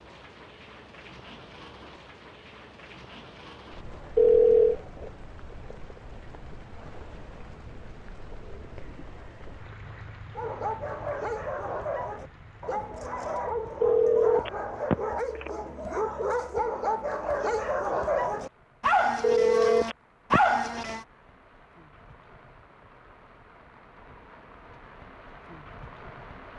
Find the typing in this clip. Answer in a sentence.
You can't hear the typing here.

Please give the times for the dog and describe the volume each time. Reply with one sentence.
The dog can be heard from 10.3 to 21.1 s, getting louder.